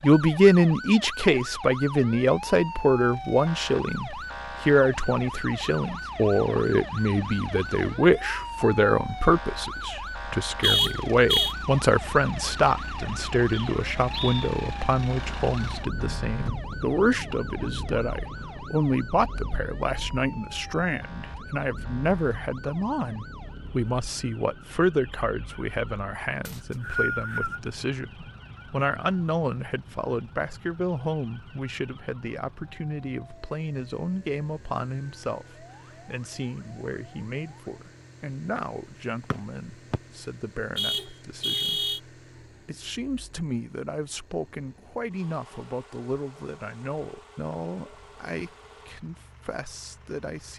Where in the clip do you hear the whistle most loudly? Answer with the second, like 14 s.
27 s.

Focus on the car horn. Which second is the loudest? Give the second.
11 s.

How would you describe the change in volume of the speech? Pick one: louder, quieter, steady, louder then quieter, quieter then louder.
quieter.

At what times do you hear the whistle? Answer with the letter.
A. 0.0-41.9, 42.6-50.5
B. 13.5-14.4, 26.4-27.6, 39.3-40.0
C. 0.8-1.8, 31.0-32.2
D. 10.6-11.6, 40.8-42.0
B.